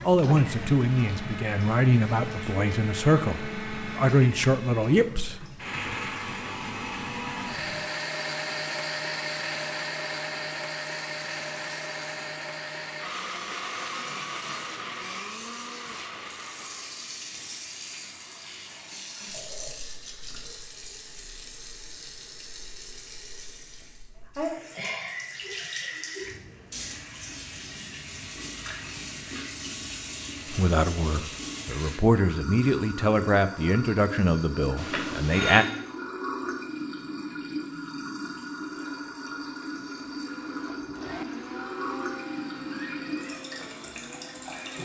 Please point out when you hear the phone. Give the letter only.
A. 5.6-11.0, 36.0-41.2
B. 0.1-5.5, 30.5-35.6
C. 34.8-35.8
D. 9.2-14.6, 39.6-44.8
C.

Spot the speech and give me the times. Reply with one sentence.
You can hear the speech from 0.1 to 5.5 s and from 30.5 to 35.6 s.